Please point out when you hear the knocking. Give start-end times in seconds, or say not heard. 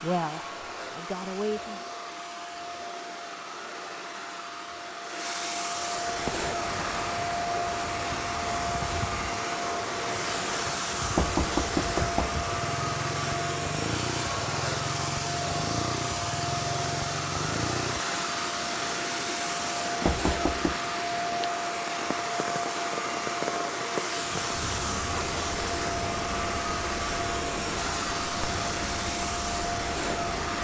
11.2-12.4, 20.1-20.8.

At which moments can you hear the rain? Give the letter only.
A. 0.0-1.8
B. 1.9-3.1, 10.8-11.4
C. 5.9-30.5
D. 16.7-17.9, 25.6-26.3
C.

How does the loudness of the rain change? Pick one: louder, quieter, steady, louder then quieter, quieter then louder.
steady.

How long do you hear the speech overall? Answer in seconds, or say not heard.
2 s.